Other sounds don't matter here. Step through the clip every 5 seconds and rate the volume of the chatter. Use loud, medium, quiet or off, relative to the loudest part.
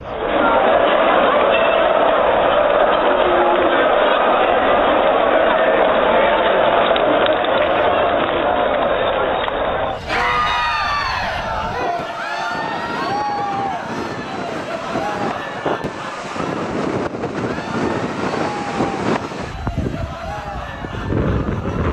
loud, loud, medium, quiet, quiet.